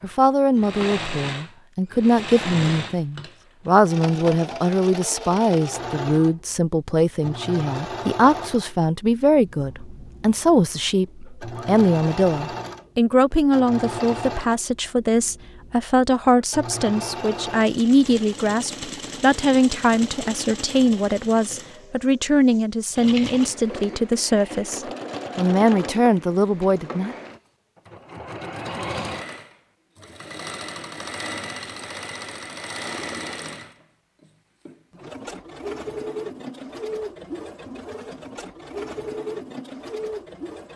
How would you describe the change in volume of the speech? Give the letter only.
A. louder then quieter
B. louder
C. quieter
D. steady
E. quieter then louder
D.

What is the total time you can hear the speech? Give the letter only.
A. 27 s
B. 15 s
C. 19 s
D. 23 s
A.